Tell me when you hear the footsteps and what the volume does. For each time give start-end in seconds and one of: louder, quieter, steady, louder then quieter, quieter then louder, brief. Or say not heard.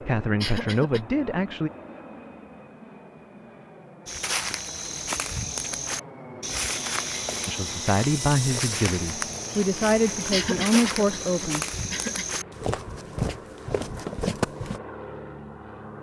4.0-14.8 steady.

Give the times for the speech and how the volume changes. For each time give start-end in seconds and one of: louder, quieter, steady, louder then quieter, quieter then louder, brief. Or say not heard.
0.1-1.7 brief
7.5-11.7 quieter then louder.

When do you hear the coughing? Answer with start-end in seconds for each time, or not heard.
0.4-1.0, 10.3-12.3.